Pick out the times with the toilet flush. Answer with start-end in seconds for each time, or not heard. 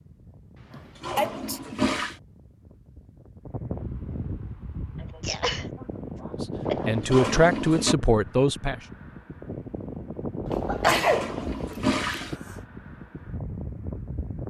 0.7-2.1, 6.7-8.0, 10.9-12.3.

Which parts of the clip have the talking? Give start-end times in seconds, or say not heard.
6.4-8.8.